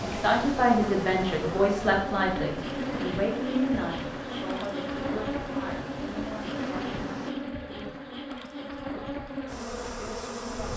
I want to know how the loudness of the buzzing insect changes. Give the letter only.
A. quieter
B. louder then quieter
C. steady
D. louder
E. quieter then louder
C.